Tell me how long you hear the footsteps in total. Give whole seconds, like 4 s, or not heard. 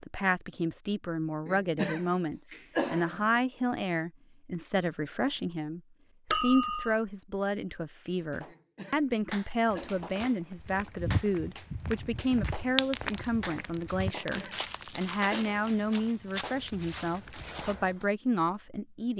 8 s.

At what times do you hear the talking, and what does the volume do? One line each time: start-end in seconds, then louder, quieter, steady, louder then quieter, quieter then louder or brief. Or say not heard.
0.0-19.1 steady.